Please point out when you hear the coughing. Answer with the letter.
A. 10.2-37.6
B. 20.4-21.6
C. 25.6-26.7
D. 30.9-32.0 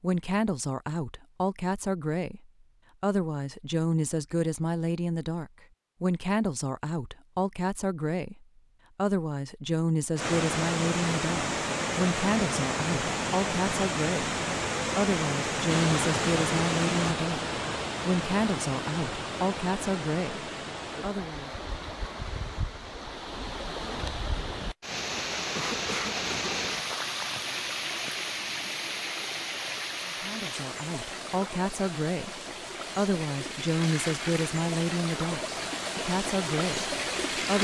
C.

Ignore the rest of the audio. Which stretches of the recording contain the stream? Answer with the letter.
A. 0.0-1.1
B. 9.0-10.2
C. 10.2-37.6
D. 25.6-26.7
C.